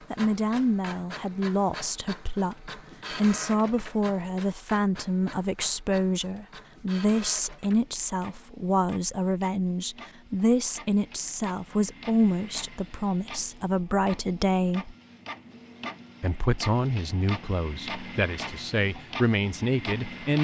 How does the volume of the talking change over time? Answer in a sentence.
The loudness of the talking stays about the same.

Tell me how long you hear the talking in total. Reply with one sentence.
You can hear the talking for 19 seconds altogether.